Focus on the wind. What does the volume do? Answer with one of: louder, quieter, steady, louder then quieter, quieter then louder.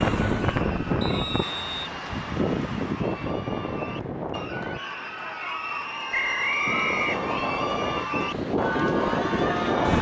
quieter then louder.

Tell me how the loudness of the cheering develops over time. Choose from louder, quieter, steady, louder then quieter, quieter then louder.
louder.